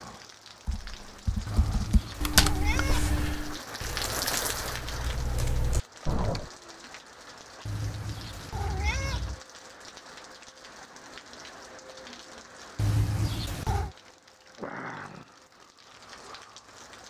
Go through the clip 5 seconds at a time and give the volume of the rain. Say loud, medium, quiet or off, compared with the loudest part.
loud, medium, medium, medium.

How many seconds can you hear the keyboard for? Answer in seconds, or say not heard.
6 s.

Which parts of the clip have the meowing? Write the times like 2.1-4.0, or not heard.
1.4-3.4, 7.7-9.4, 12.8-13.9.